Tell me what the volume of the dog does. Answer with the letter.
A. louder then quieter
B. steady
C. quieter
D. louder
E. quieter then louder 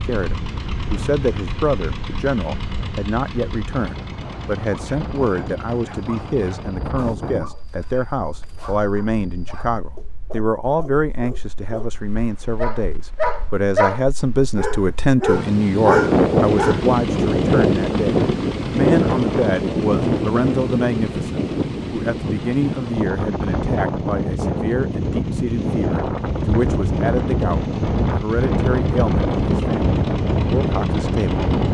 D.